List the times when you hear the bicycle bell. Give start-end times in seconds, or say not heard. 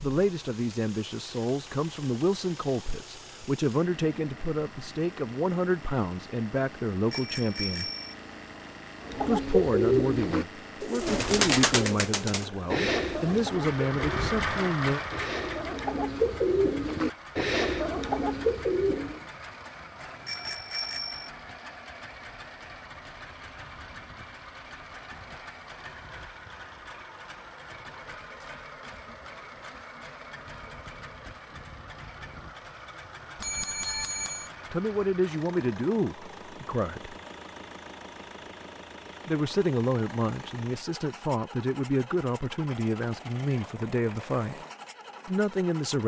7.1-8.2, 20.2-21.3, 33.4-34.5.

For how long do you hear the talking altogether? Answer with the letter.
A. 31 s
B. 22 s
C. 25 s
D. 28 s
B.